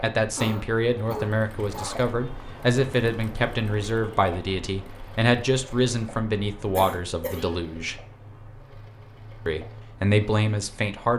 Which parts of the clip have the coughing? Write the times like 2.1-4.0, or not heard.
0.3-2.0, 6.8-7.5.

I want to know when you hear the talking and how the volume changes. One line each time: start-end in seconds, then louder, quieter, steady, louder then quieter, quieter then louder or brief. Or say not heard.
0.0-8.0 steady
9.4-11.1 brief.